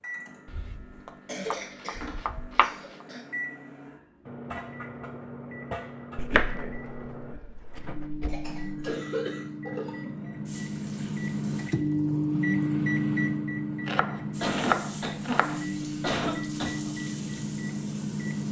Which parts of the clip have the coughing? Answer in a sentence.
You can hear the coughing from 1.2 to 3.2 s, from 8.2 to 10.1 s and from 14.4 to 16.9 s.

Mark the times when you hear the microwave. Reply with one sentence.
You can hear the microwave from 0.0 to 18.4 s.